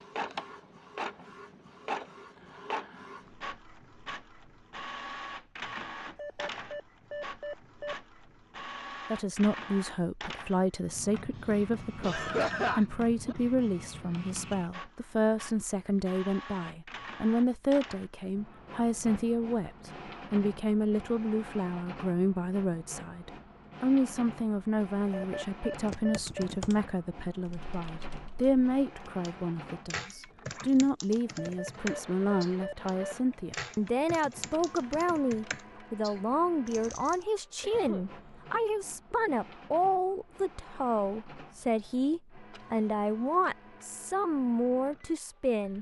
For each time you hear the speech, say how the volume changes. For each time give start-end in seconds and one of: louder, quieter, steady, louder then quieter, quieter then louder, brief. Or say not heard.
9.1-45.7 steady.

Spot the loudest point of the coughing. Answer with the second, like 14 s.
13 s.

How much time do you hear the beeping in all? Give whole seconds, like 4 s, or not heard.
5 s.